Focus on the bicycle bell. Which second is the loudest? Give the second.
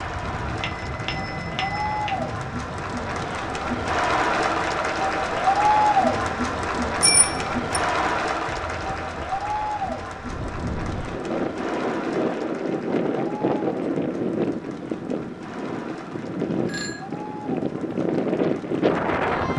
7 s.